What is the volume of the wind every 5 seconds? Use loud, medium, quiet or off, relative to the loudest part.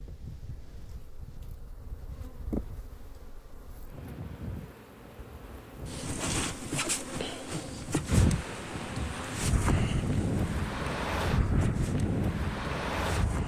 quiet, loud, loud.